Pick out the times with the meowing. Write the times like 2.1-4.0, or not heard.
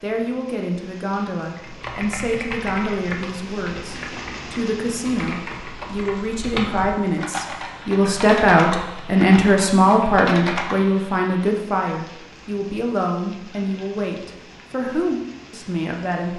not heard.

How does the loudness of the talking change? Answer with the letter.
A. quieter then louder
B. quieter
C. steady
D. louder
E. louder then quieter
E.